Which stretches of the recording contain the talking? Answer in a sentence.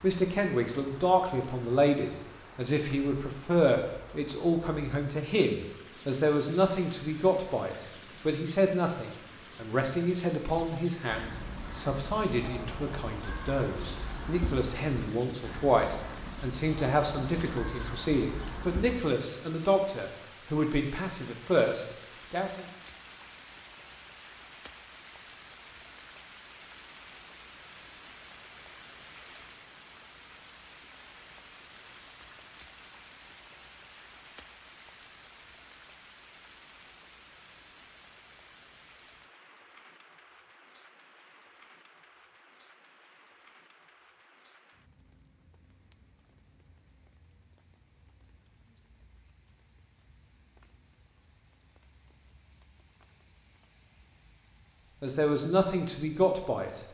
You can hear the talking from 0.0 to 22.6 s and from 55.0 to 56.8 s.